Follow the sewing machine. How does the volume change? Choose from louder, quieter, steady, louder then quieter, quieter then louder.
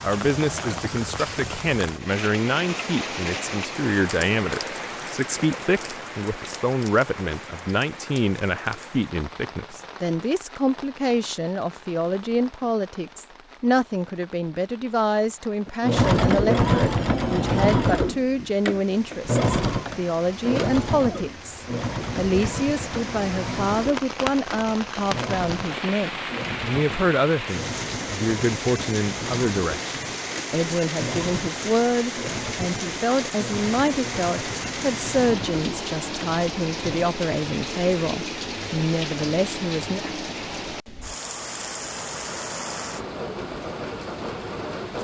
quieter.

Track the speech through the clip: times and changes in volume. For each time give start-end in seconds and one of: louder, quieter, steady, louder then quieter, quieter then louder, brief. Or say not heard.
0.0-40.0 steady.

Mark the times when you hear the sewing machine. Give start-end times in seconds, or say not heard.
15.8-37.1.